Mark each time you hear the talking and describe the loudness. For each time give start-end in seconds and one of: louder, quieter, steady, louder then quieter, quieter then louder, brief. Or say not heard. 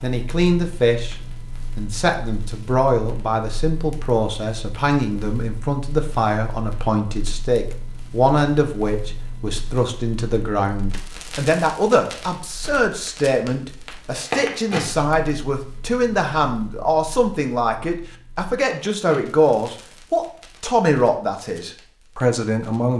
0.0-1.1 brief
1.8-22.9 steady.